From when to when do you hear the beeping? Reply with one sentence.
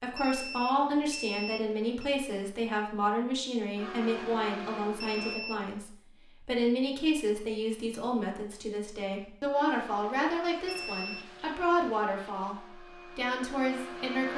You can hear the beeping from 0.1 to 2.1 s, from 5.0 to 5.8 s and from 10.7 to 11.2 s.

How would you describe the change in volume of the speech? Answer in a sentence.
The volume of the speech stays about the same.